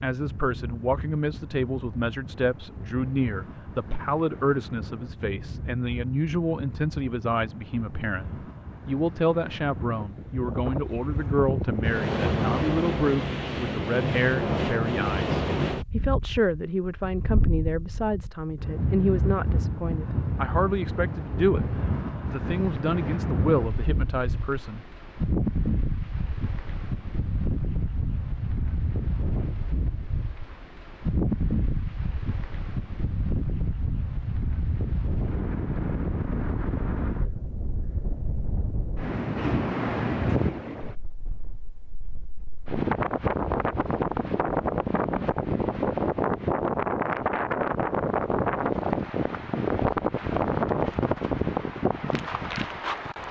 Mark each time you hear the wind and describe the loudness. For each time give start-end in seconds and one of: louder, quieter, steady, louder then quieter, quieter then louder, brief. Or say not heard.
0.1-53.2 louder.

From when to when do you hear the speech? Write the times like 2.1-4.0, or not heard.
0.0-24.8.